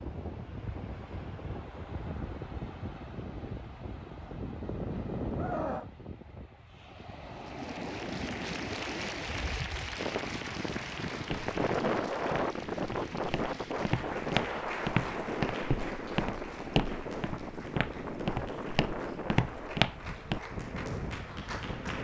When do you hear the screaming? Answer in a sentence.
The screaming can be heard from 5.3 to 5.9 s.